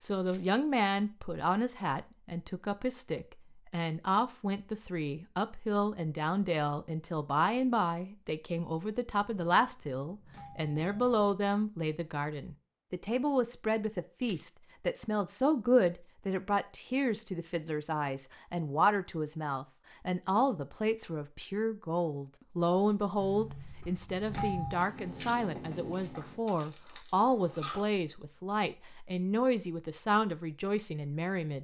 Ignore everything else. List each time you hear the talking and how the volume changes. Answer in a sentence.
You can hear the talking from 0.0 to 31.5 s, at a steady volume.